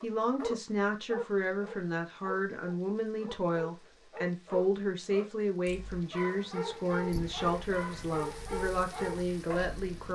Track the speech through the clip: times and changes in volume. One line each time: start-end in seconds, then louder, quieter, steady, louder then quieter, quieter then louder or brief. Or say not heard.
0.0-10.1 steady.